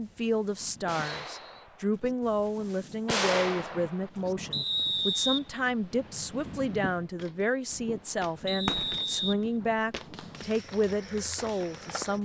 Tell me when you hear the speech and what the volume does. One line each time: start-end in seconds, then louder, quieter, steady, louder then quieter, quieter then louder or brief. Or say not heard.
0.0-12.1 steady.